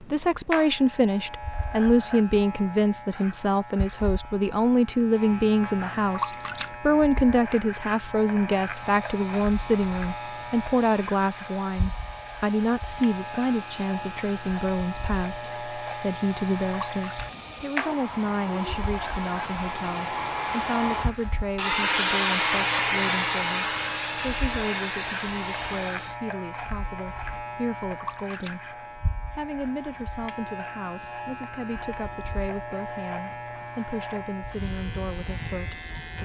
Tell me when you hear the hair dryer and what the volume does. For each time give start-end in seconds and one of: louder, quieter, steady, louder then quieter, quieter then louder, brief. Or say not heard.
8.7-26.2 louder.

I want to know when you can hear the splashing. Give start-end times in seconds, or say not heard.
6.1-6.8, 16.9-17.4, 28.0-28.6.